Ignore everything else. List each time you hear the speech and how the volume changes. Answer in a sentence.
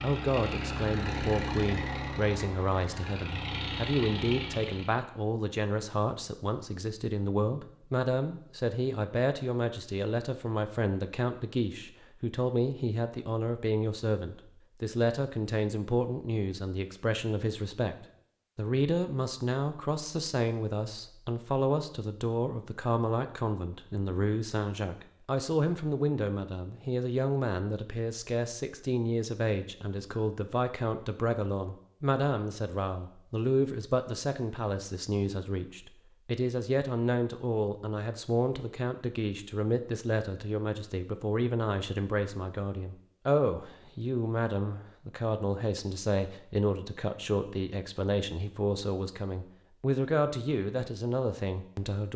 The speech can be heard from 0.0 to 52.1 s, at a steady volume.